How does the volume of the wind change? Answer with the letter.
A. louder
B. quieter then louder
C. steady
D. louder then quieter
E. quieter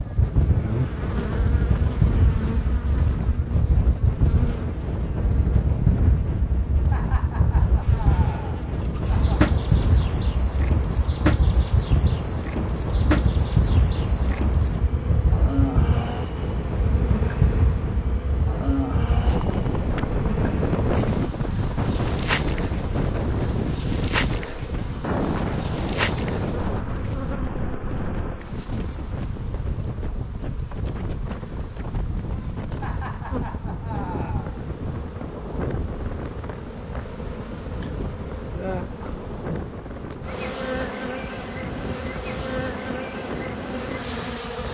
E.